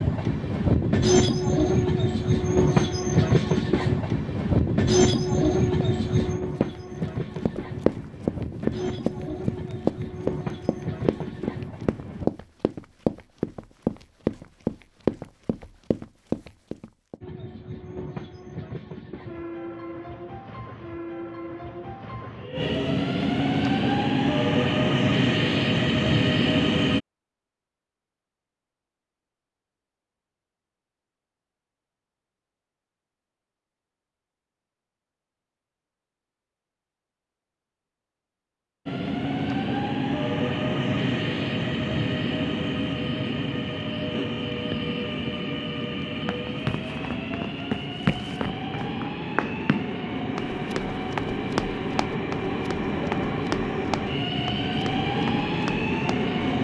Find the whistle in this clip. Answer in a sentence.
You can't hear the whistle here.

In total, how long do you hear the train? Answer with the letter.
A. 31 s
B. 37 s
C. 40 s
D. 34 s
C.